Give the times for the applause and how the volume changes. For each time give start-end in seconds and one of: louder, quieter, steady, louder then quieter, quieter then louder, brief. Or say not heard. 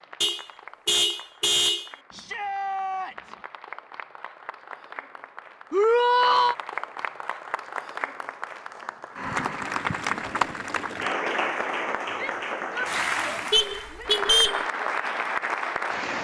0.0-16.2 louder.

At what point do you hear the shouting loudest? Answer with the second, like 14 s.
6 s.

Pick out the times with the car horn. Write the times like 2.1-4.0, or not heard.
0.2-1.9, 13.5-14.7.